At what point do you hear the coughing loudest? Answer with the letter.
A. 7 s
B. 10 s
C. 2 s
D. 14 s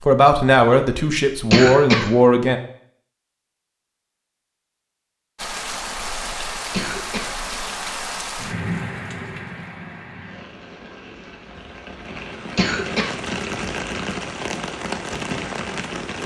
C.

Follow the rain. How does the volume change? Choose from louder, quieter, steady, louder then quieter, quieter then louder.
quieter then louder.